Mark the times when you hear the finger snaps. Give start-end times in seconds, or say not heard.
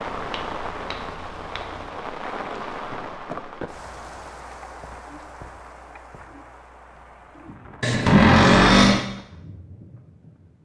0.1-1.9, 7.8-9.1.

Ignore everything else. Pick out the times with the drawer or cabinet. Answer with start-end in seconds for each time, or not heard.
8.1-9.0.